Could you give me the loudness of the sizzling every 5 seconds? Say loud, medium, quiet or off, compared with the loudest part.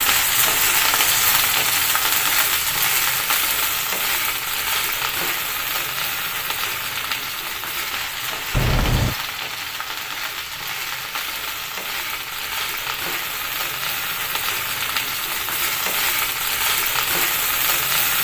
loud, medium, medium, loud.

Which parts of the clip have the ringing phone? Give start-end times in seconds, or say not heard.
8.5-9.2.